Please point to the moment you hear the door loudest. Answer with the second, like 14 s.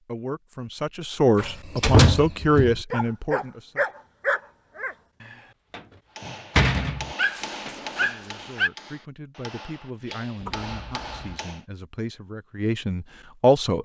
2 s.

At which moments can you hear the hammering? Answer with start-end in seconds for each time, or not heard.
6.2-11.7.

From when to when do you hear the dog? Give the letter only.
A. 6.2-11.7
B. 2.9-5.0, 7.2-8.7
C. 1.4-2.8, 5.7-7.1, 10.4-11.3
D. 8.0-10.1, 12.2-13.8
B.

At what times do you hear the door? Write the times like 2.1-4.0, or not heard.
1.4-2.8, 5.7-7.1, 10.4-11.3.